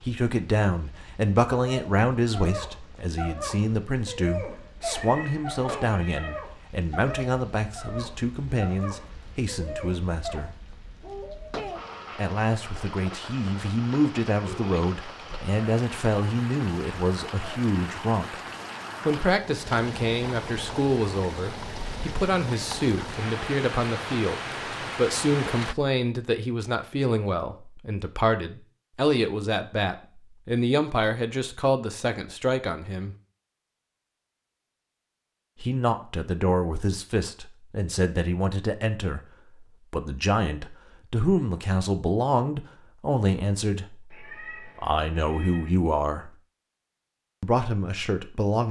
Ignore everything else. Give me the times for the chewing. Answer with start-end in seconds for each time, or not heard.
not heard.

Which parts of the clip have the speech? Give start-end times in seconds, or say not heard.
0.0-10.5, 12.2-18.4, 19.1-33.1, 35.6-46.4, 47.4-48.6.